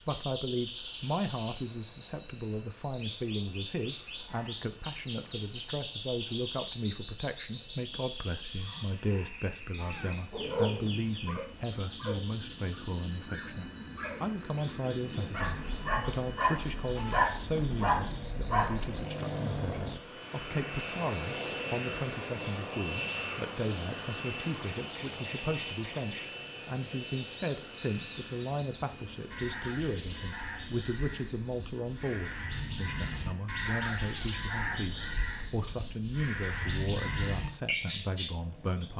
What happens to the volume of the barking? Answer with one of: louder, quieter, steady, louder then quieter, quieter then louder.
quieter then louder.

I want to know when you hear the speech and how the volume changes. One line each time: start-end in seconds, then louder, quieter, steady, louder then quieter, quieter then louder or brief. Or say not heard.
0.1-38.9 steady.